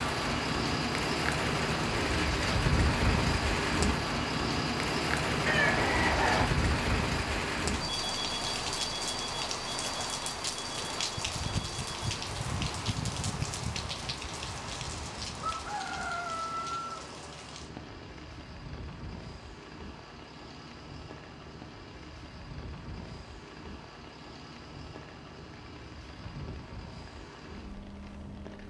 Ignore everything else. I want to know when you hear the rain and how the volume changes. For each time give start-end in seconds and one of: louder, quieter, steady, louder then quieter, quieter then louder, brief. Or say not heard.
0.0-28.6 quieter.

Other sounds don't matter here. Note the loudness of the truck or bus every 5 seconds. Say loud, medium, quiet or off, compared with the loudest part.
loud, loud, quiet, quiet, quiet, quiet.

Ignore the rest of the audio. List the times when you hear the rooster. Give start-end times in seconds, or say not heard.
5.5-6.5, 15.4-17.1.